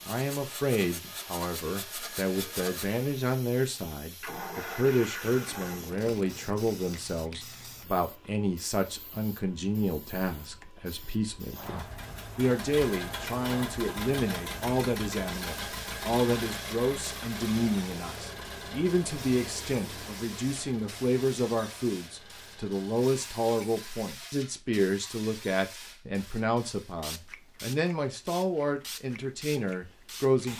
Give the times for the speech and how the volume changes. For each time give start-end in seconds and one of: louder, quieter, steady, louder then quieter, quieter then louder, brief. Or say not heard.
0.1-30.5 steady.